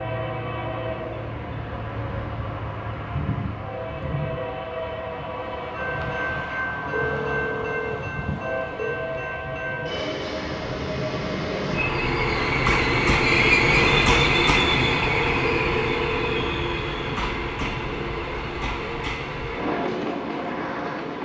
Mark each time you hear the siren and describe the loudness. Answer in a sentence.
You can't hear the siren here.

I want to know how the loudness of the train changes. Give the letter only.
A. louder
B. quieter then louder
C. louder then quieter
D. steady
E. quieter
C.